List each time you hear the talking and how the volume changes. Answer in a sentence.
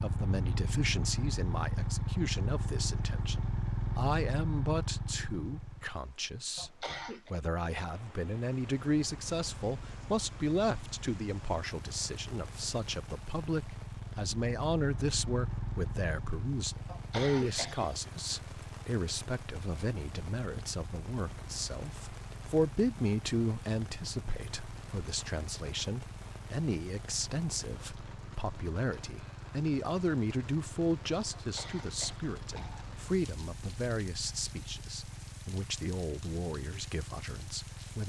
You can hear the talking from 0.0 to 38.0 s, at a steady volume.